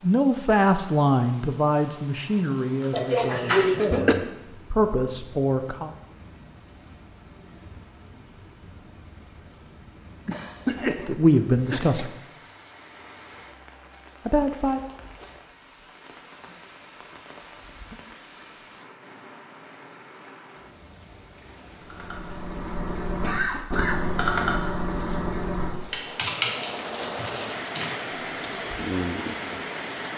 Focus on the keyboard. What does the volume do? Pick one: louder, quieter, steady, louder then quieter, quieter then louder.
louder then quieter.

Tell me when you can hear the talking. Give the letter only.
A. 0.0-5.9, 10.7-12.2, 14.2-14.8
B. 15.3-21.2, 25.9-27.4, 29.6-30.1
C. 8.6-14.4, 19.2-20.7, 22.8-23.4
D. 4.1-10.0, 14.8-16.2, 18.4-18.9
A.